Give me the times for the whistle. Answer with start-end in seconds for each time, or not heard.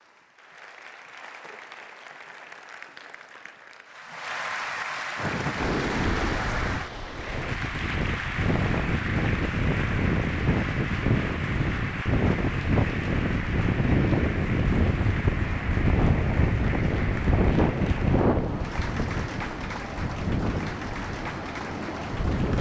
not heard.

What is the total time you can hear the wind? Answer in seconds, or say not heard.
17 s.